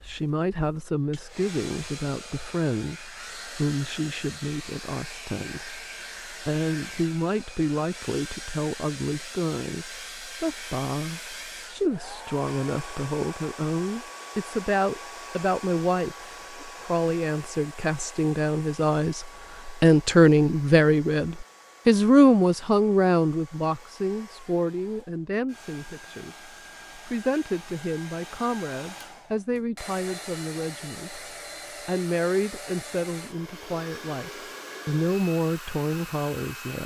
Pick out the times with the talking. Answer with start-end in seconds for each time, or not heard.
0.0-31.2, 31.9-36.8.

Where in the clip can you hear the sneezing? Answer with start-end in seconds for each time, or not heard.
not heard.